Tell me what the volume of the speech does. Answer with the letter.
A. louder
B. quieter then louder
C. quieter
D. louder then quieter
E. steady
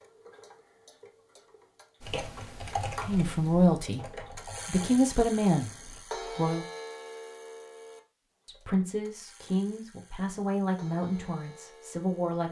C.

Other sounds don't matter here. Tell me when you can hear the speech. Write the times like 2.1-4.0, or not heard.
3.0-6.7, 8.4-12.4.